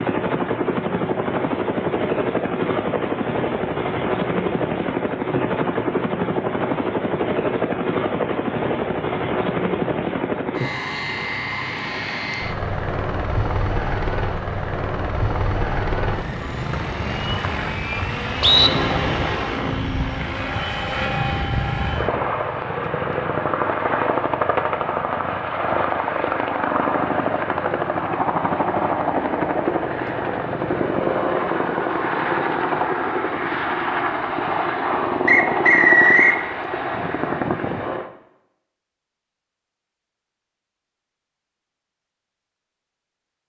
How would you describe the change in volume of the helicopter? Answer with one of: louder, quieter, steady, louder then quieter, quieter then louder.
steady.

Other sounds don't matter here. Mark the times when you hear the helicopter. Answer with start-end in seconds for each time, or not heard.
0.0-38.1.